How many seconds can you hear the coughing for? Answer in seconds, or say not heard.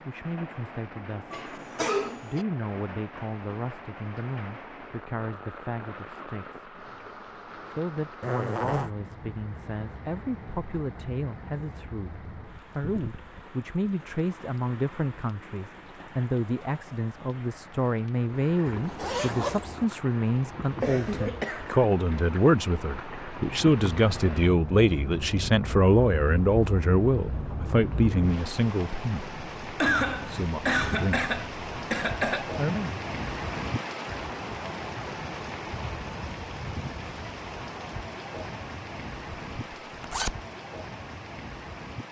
5 s.